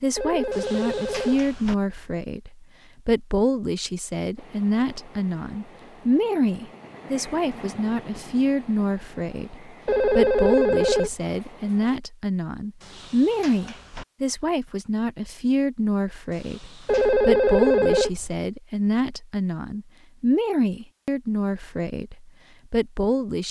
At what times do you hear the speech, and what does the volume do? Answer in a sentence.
You can hear the speech from 0.0 to 23.4 s, at a steady volume.